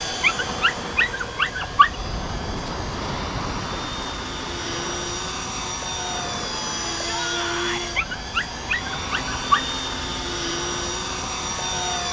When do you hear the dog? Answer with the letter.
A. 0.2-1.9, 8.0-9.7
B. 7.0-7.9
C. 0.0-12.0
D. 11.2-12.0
A.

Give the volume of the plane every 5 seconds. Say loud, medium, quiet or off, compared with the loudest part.
medium, loud, loud.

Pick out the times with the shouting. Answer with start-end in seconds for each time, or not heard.
7.0-7.9.